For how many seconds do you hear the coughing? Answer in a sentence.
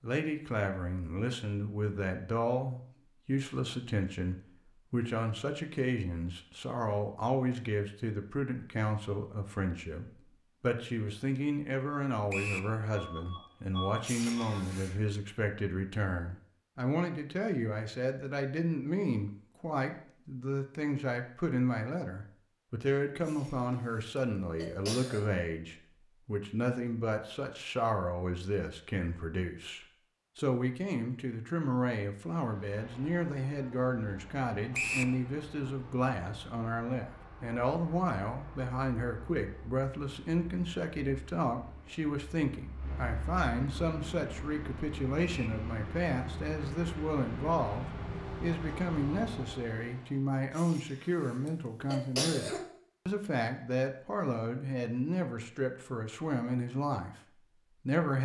You can hear the coughing for 5 seconds altogether.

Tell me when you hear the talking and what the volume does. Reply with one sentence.
You can hear the talking from 0.0 to 58.2 s, at a steady volume.